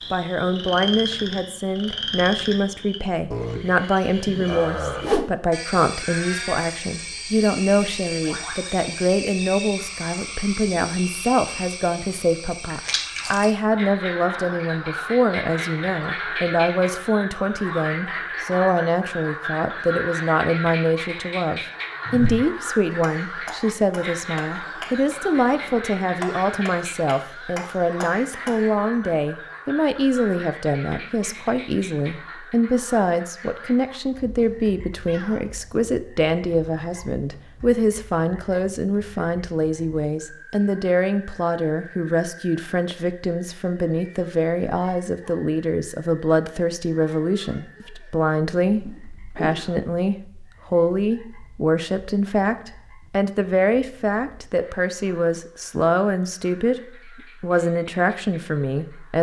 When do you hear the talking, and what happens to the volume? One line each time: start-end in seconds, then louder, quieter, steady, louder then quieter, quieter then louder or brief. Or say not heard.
0.1-59.1 steady.